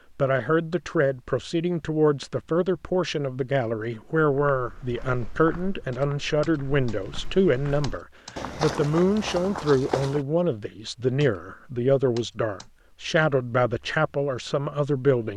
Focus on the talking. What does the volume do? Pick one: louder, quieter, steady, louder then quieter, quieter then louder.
steady.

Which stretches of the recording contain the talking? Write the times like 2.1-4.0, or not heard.
0.1-15.3.